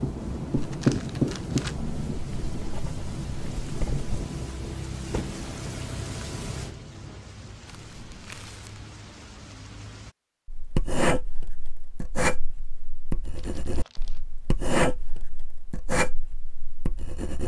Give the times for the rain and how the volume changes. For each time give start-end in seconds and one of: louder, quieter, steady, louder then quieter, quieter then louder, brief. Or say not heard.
0.0-10.2 quieter.